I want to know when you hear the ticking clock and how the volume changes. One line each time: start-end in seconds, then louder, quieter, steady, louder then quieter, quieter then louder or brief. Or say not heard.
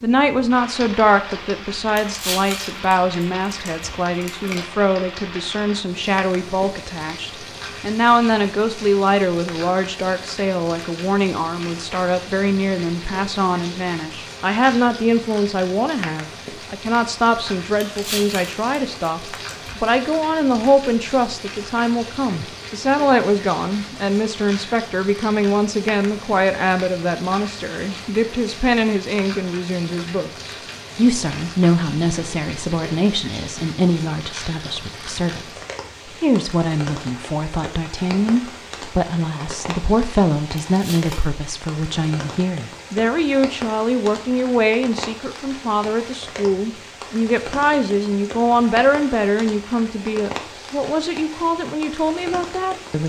not heard.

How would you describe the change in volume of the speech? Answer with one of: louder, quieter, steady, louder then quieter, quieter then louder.
steady.